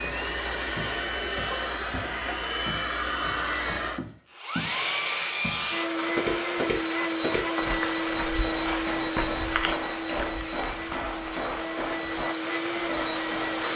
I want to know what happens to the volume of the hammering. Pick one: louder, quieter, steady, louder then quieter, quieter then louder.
steady.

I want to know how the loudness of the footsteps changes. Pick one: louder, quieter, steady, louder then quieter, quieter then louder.
louder then quieter.